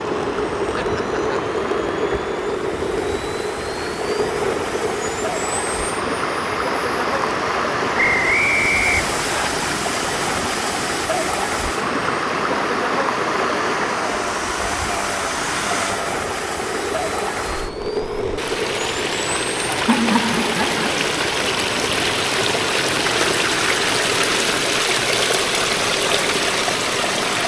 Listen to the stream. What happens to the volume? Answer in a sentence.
The volume of the stream goes up.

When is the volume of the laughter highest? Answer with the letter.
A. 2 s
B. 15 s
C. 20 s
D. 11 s
C.